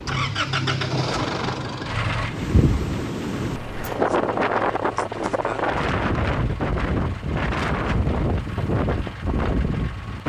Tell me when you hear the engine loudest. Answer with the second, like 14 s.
1 s.